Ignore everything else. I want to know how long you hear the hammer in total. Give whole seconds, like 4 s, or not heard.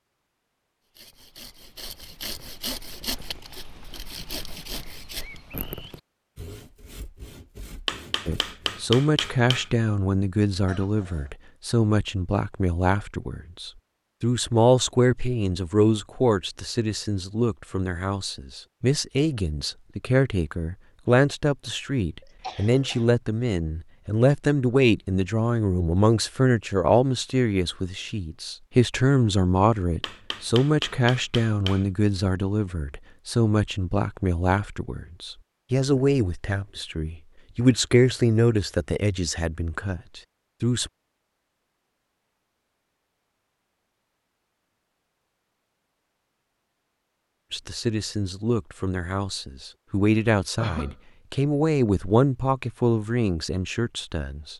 4 s.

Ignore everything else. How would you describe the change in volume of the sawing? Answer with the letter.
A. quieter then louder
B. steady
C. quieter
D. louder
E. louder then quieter
C.